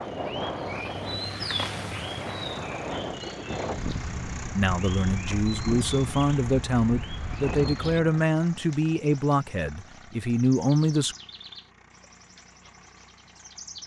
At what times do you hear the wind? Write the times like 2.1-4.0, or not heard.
0.0-8.2.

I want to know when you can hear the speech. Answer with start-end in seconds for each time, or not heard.
4.5-11.2.